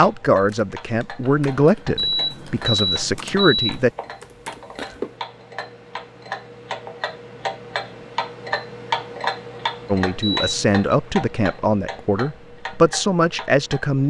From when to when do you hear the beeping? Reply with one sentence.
You can hear the beeping from 1.9 to 3.8 s and from 10.2 to 10.8 s.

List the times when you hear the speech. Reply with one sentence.
You can hear the speech from 0.0 to 3.9 s and from 9.9 to 14.0 s.